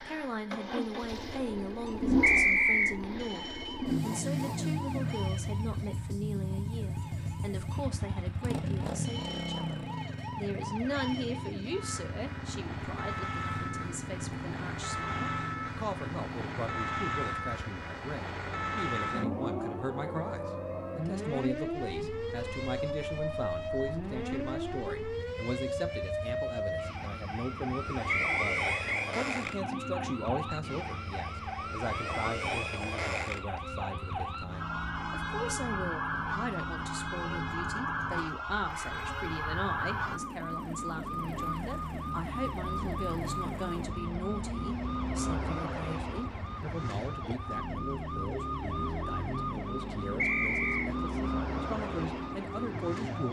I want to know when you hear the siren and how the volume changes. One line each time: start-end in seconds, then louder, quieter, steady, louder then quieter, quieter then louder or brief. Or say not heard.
0.0-53.2 louder.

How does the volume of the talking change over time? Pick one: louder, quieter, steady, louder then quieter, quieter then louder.
steady.